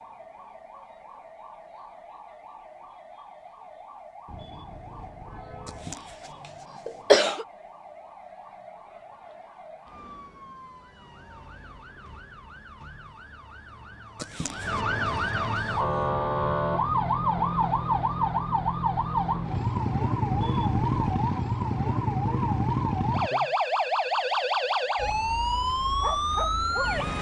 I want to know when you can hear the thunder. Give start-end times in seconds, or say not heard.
not heard.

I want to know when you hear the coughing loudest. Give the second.
7 s.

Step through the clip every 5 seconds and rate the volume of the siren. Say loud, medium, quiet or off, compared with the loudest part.
quiet, quiet, quiet, loud, loud, loud.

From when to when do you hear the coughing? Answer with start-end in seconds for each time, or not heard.
5.7-7.5, 14.2-14.8.